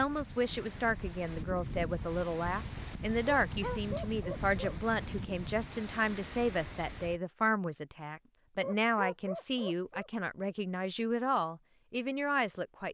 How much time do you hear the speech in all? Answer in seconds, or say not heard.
13 s.